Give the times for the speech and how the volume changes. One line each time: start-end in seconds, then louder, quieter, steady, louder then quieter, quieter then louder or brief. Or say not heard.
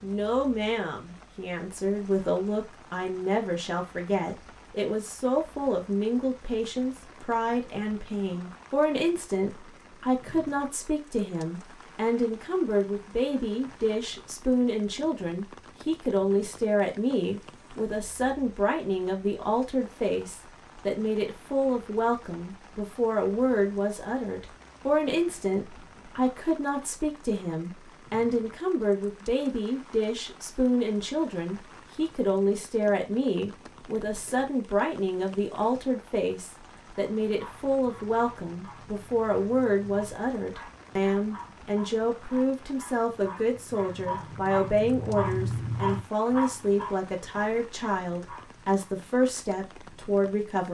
0.0-50.6 steady.